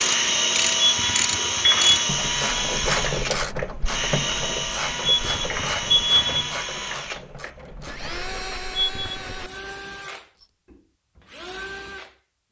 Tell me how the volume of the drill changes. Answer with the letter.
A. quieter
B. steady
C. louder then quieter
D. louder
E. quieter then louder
A.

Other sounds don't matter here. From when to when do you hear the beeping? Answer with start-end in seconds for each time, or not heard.
0.8-2.0, 5.0-6.5, 8.8-9.4.